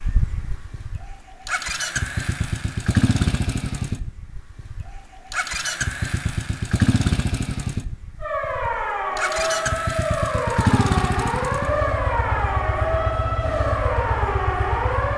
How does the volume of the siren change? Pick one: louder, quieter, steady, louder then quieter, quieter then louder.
steady.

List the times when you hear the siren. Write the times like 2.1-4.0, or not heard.
8.2-15.1.